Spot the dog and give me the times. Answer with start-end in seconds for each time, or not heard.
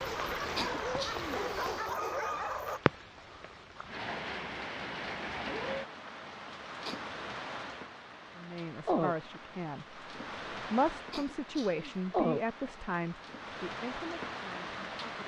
0.0-2.8.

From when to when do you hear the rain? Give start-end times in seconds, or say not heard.
0.0-15.2.